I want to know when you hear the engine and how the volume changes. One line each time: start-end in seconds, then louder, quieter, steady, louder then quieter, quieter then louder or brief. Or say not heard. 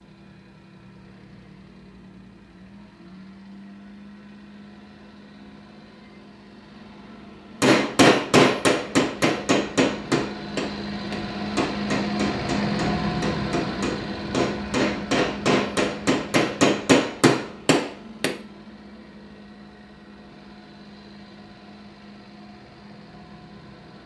0.0-24.0 louder then quieter.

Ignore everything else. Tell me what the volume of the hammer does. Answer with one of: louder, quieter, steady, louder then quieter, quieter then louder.
quieter then louder.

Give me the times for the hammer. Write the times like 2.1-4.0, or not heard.
7.6-18.4.